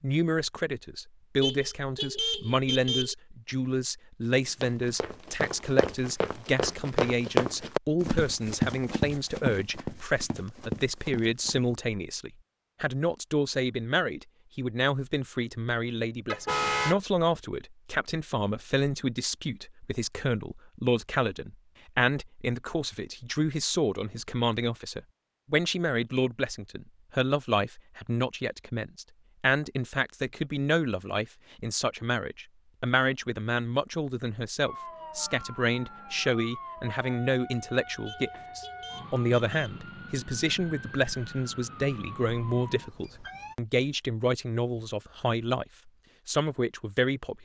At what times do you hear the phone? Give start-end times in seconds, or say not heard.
not heard.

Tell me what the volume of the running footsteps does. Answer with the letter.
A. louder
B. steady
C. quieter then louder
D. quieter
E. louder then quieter
E.